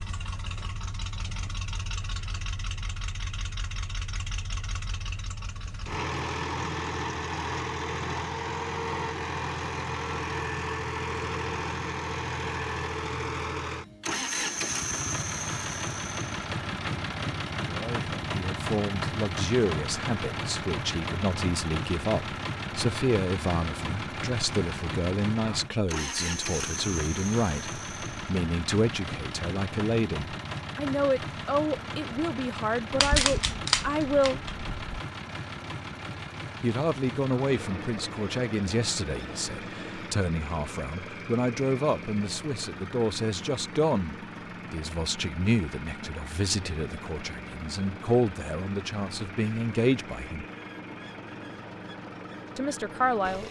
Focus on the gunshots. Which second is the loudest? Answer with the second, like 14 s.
33 s.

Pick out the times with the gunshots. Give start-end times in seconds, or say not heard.
33.0-34.8.